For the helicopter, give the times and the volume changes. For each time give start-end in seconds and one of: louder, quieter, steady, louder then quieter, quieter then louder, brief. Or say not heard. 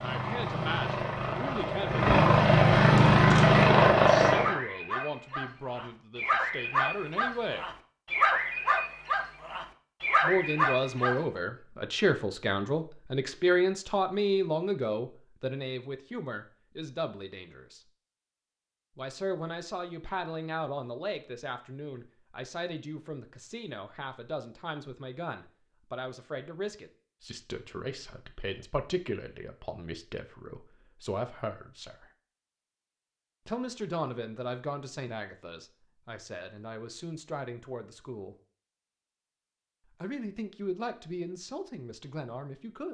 0.0-4.5 louder.